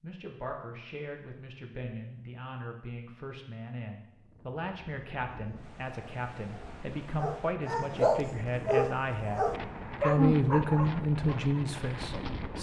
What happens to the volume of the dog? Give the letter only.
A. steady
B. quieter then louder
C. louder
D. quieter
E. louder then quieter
D.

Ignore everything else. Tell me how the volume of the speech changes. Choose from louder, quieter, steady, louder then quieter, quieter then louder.
louder.